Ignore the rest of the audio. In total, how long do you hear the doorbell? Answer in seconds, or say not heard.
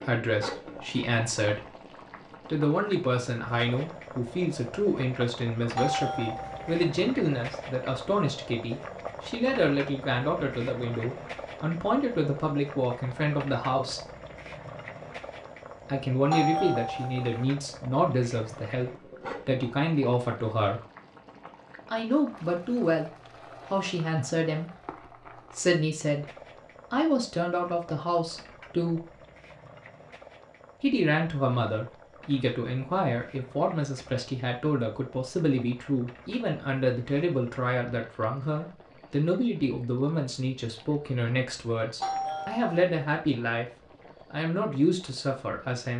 3 s.